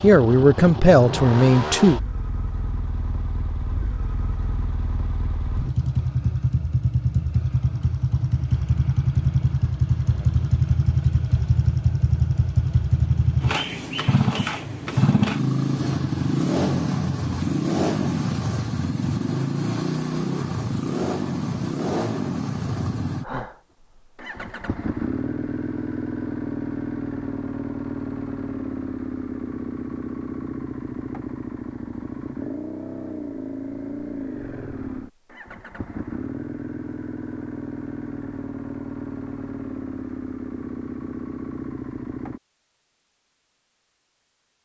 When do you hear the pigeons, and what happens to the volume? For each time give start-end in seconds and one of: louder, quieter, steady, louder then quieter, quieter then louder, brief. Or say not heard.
not heard.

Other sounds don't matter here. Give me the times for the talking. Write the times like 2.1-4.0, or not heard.
0.0-2.0.